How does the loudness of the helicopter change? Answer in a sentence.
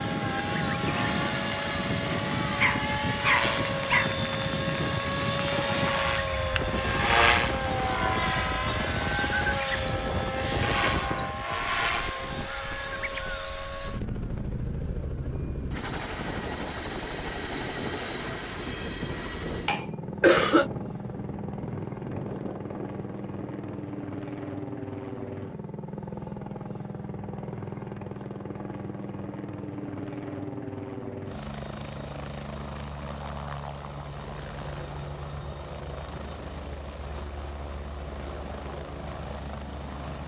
The volume of the helicopter goes down.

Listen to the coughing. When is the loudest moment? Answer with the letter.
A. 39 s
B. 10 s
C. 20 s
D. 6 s
C.